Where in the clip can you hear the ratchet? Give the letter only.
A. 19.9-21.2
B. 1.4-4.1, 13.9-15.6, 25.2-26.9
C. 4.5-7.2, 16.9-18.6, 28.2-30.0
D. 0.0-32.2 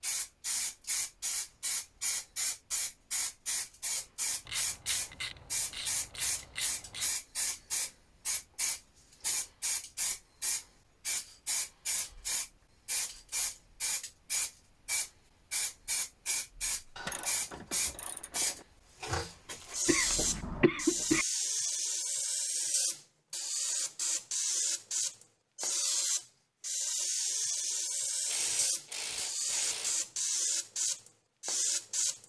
C.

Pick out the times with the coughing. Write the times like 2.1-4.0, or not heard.
19.9-21.2.